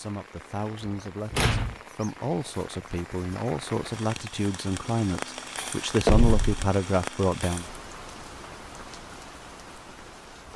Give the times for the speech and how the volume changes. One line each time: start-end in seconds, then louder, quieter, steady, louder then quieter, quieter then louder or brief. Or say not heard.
0.0-7.7 louder.